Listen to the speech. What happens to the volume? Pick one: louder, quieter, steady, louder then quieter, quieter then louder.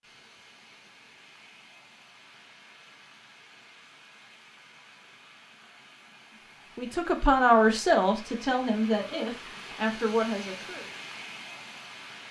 quieter then louder.